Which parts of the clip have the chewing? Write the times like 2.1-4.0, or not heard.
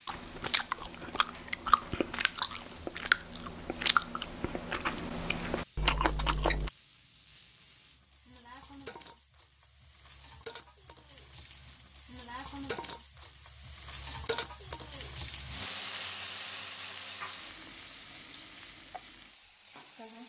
0.1-6.7.